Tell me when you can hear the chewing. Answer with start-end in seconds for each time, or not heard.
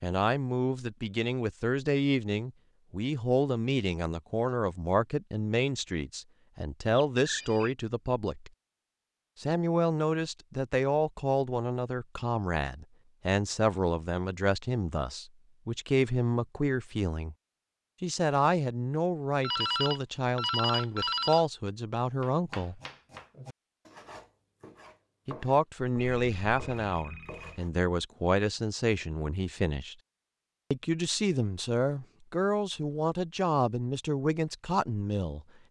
not heard.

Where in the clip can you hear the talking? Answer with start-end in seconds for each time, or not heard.
0.0-8.5, 9.4-17.4, 18.0-22.8, 25.2-29.9, 30.7-35.5.